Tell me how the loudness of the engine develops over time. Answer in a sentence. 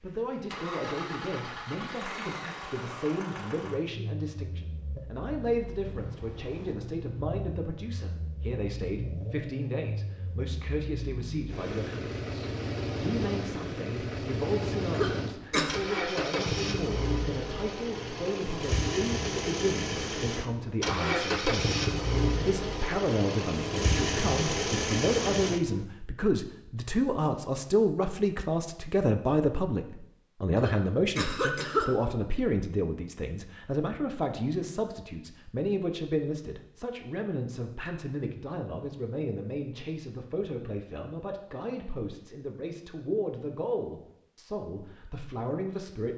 The loudness of the engine goes up.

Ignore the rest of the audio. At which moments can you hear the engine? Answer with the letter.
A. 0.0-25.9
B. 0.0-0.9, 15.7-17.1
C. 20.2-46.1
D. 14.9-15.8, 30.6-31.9
A.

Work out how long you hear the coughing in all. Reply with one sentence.
The coughing can be heard for 2 seconds in total.